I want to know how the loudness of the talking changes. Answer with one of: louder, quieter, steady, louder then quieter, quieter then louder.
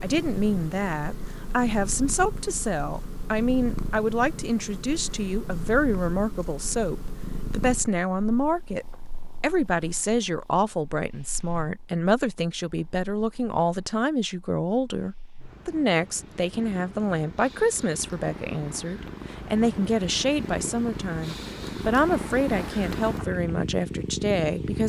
steady.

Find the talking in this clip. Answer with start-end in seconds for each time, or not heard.
0.0-24.8.